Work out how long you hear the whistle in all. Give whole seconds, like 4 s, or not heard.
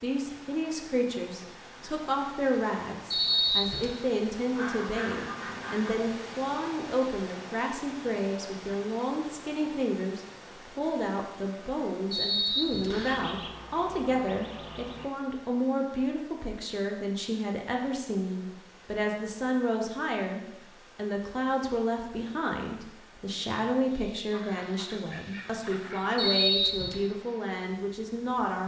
3 s.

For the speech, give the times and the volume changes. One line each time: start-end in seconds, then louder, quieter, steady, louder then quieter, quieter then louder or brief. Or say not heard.
0.0-28.6 steady.